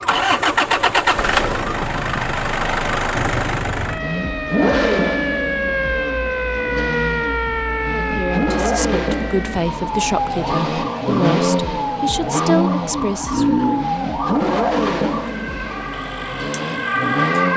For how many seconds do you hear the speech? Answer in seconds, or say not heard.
6 s.